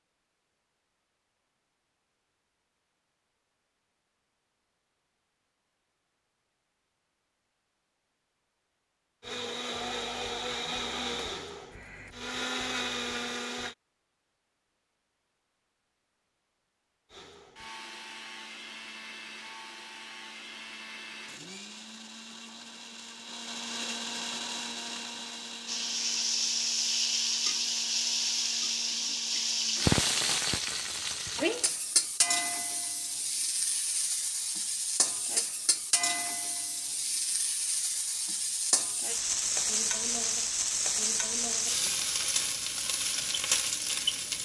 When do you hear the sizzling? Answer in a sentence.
You can hear the sizzling from 25.6 to 44.3 s.